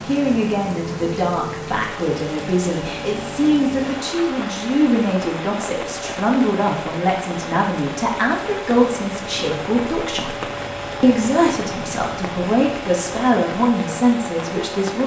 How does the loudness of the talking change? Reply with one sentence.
The loudness of the talking stays about the same.